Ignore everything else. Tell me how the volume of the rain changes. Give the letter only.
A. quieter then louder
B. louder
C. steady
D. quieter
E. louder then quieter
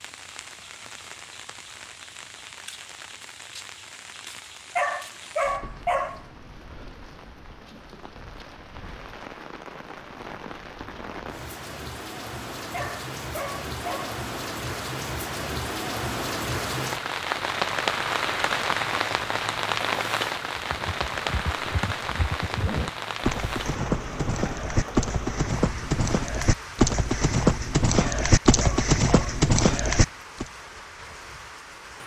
E.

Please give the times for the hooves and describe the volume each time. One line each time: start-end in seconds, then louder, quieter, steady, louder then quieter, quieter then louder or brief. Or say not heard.
20.6-30.4 louder.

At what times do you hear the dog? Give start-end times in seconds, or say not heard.
4.8-6.2, 12.7-14.2, 27.9-29.4.